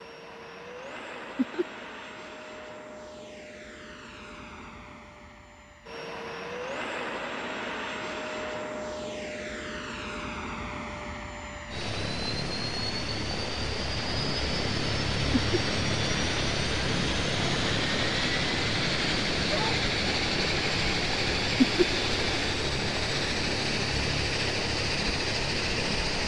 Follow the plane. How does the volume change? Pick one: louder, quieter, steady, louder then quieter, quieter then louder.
louder.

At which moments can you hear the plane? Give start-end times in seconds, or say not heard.
0.0-26.2.